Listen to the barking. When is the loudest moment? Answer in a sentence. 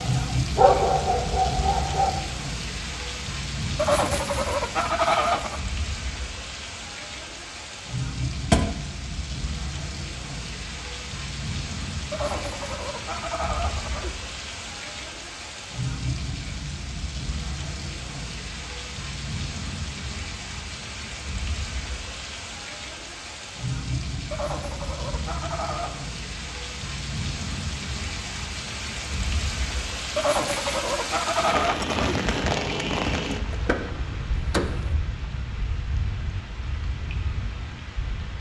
The loudest moment of the barking is at 1 second.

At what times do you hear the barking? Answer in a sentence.
The barking can be heard from 0.0 to 2.1 s.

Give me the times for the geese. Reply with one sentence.
You can hear the geese from 3.8 to 5.6 s, from 12.1 to 14.1 s, from 24.3 to 26.0 s and from 30.1 to 32.1 s.